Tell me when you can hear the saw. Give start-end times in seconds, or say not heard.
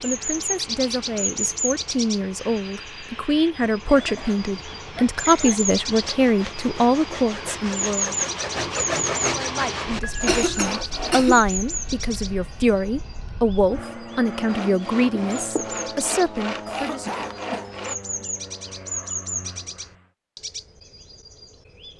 5.9-11.2, 14.4-18.0.